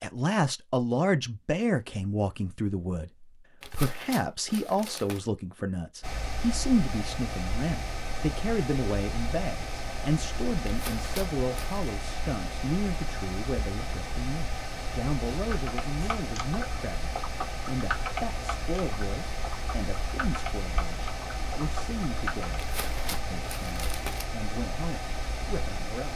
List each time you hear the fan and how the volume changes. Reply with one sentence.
You can hear the fan from 6.0 to 26.1 s, at a steady volume.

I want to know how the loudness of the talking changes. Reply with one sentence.
The volume of the talking goes down.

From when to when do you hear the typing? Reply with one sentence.
You can hear the typing from 15.5 to 22.6 s.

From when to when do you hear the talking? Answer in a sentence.
You can hear the talking from 0.0 to 26.1 s.